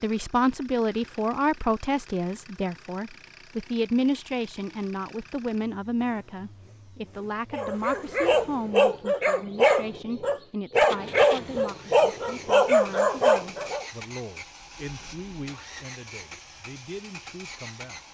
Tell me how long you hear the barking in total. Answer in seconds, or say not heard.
6 s.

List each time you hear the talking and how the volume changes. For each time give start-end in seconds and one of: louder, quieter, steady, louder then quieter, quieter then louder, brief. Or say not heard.
0.0-18.0 quieter.